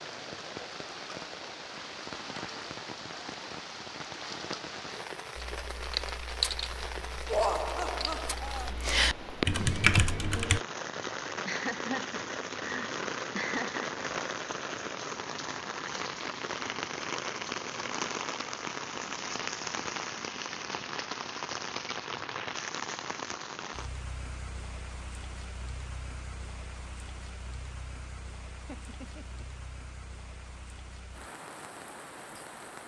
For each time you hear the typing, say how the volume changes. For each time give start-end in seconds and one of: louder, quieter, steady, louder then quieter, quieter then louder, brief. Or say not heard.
5.3-10.6 quieter then louder.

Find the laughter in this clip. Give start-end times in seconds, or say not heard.
7.2-8.7, 11.4-14.1, 28.6-29.6.